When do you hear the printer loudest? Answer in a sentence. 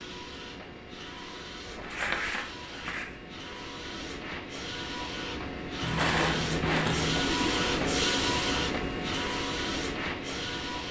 The volume of the printer peaks at 8 seconds.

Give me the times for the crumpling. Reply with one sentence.
The crumpling can be heard from 1.8 to 3.0 s and from 5.8 to 7.2 s.